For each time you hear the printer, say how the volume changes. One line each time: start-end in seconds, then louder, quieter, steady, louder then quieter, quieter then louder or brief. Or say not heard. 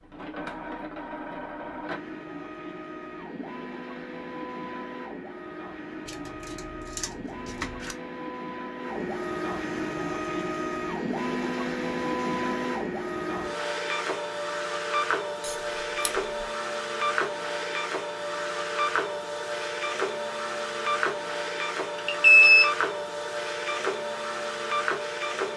0.0-25.5 louder.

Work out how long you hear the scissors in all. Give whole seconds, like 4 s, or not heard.
3 s.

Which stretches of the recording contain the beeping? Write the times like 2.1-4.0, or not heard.
21.9-22.7.